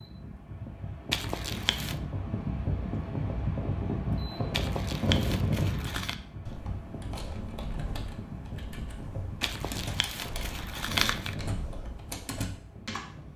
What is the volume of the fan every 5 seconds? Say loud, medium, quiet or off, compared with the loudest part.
loud, loud, medium.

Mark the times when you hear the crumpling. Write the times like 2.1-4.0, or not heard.
1.1-1.9, 4.5-6.2, 9.4-11.3.